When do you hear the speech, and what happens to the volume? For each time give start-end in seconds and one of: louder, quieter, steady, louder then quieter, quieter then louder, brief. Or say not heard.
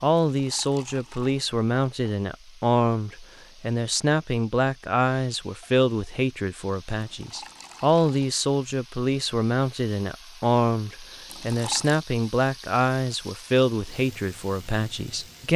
0.0-15.5 steady.